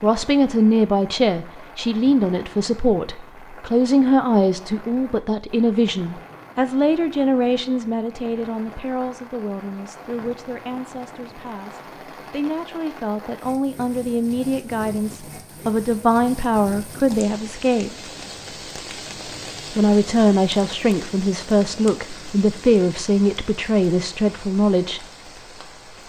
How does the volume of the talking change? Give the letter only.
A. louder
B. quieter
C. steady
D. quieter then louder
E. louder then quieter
D.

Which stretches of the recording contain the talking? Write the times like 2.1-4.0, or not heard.
0.0-17.9, 19.7-25.0.